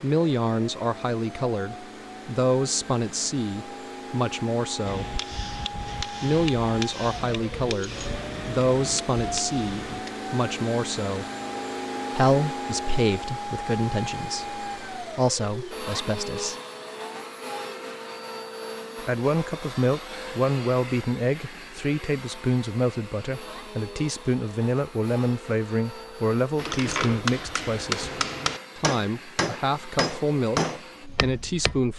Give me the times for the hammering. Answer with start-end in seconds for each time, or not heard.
4.8-10.1, 26.6-31.8.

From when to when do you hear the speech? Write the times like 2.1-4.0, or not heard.
0.0-5.0, 6.2-11.2, 12.2-16.6, 18.9-31.9.